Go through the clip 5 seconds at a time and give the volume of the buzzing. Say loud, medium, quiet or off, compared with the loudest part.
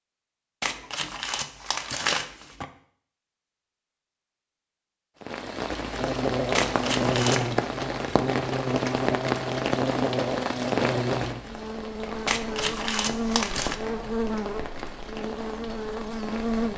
off, loud, loud, loud.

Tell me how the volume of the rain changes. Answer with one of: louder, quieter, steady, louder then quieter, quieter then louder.
quieter.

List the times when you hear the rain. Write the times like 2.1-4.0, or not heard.
5.2-16.7.